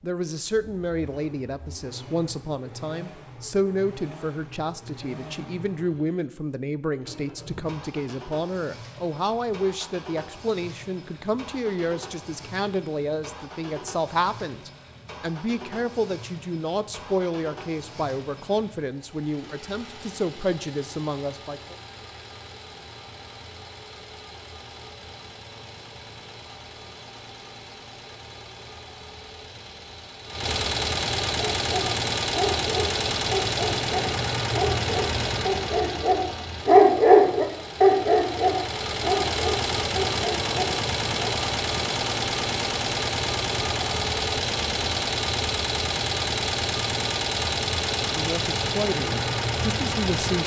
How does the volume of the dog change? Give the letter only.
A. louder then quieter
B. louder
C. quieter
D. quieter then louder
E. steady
A.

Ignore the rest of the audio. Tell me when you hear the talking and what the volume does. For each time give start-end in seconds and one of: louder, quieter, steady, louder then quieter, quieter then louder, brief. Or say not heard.
0.0-21.8 steady
48.0-50.4 brief.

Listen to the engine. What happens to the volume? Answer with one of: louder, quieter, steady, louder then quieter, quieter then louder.
louder.